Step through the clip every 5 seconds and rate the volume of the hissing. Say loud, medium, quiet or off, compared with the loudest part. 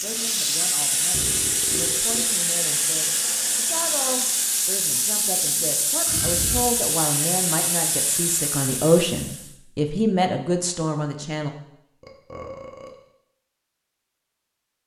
loud, loud, off.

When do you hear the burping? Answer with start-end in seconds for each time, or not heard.
1.1-2.4, 5.3-6.7, 12.0-12.9.